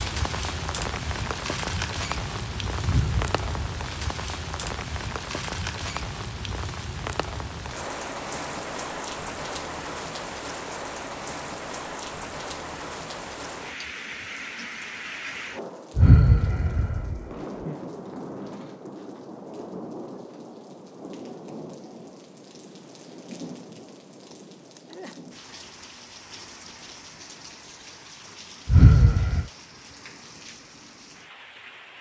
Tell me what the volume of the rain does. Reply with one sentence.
The volume of the rain goes down.